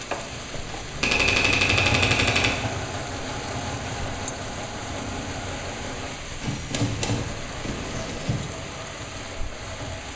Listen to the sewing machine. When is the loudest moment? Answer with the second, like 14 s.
2 s.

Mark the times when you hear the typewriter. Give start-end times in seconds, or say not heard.
1.0-2.6, 6.4-8.4.